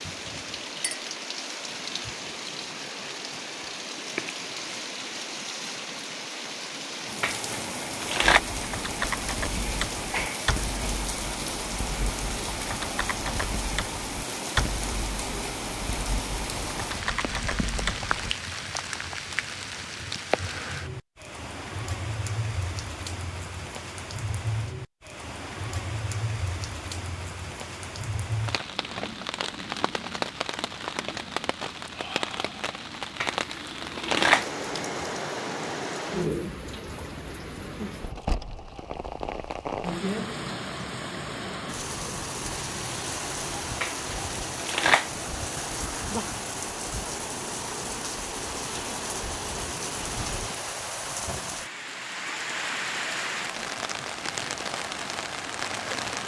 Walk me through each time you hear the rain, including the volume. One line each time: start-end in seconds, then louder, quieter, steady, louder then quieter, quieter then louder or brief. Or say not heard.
0.0-56.2 steady.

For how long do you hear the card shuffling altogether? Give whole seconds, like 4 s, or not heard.
4 s.